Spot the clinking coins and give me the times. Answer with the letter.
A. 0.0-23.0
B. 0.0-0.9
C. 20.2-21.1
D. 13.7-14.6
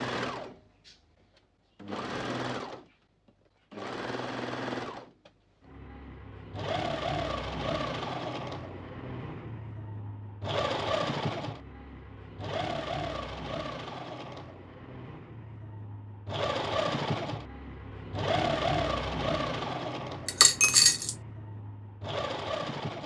C.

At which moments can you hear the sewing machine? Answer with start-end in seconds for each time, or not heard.
0.0-23.0.